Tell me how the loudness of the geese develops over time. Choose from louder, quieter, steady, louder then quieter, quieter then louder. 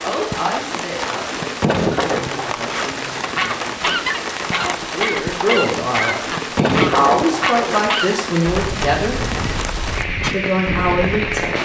quieter.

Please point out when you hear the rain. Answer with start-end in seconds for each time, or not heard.
0.0-11.6.